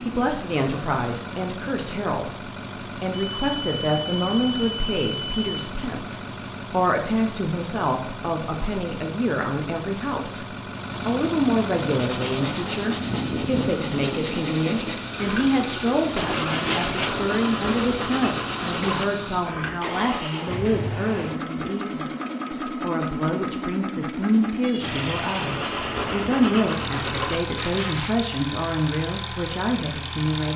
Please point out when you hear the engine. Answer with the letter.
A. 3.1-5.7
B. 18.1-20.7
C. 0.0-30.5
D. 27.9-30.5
C.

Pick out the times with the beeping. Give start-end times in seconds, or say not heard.
3.1-5.7.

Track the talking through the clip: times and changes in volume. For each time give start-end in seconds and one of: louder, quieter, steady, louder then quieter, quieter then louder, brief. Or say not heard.
0.0-30.5 steady.